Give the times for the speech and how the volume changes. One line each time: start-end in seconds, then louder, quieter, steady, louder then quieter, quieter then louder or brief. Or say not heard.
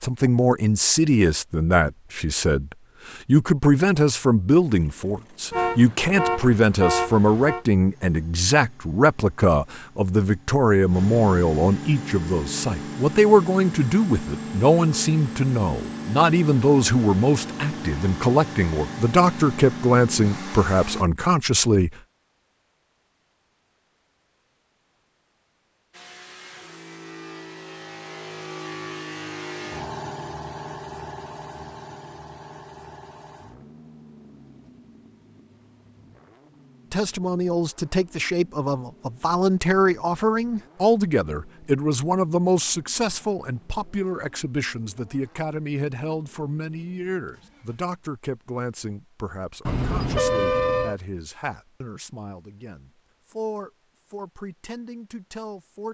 0.0-21.9 steady
36.9-55.9 quieter.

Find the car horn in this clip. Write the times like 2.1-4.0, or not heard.
5.5-7.7, 49.6-51.0.